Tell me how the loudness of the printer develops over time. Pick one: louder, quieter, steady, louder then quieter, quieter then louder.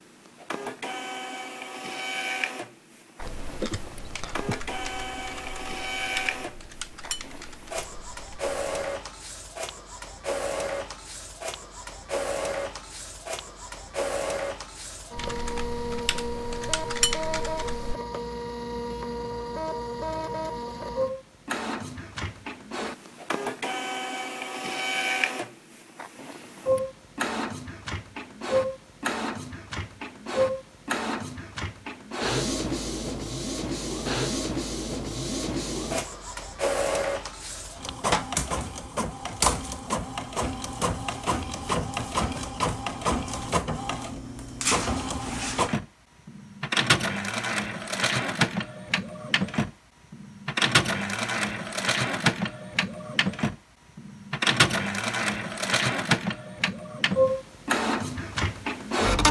louder.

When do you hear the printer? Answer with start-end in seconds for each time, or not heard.
0.0-59.2.